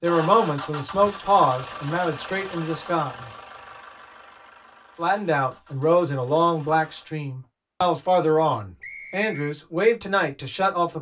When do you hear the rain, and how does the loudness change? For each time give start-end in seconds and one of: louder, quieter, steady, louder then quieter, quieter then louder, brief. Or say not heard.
not heard.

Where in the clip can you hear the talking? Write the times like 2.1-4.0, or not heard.
0.0-3.1, 5.0-10.9.